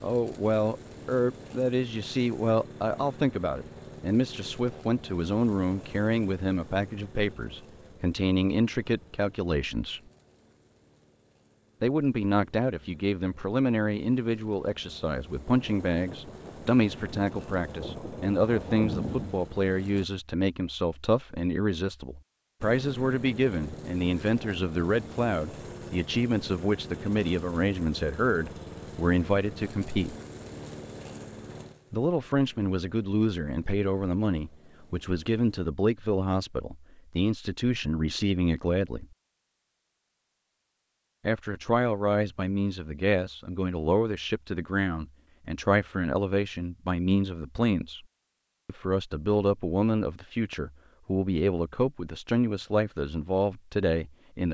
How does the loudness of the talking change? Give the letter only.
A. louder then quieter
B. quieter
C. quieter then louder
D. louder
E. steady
E.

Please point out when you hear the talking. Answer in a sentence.
The talking can be heard from 0.0 to 10.0 s, from 11.8 to 30.1 s, from 31.9 to 39.0 s, from 41.2 to 48.0 s and from 48.6 to 54.4 s.